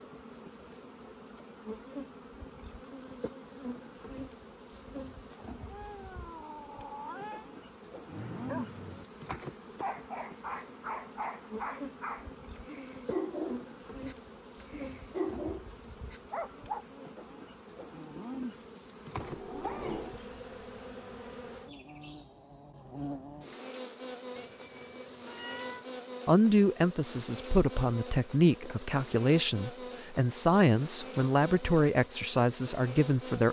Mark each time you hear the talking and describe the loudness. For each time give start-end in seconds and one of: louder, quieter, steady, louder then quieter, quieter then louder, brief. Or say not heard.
26.2-33.4 steady.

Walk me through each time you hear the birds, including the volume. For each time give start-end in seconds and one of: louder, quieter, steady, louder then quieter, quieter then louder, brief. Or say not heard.
not heard.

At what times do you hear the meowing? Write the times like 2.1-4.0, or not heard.
5.7-7.5, 19.1-20.2, 24.4-25.9.